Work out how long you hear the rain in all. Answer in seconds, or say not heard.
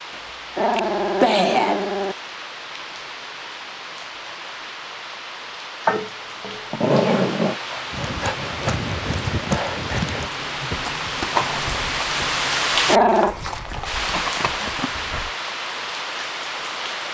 17 s.